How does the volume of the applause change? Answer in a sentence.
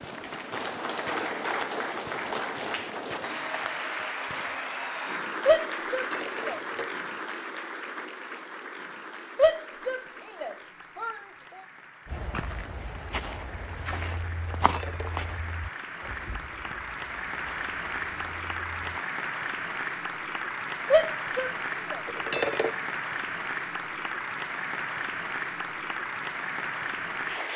The loudness of the applause goes down, then up.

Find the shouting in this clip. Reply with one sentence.
You can hear the shouting from 5.5 to 6.6 s, from 9.3 to 11.2 s and from 20.9 to 22.0 s.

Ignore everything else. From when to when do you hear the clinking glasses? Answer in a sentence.
The clinking glasses can be heard from 5.9 to 7.0 s, from 14.6 to 15.1 s and from 22.1 to 22.8 s.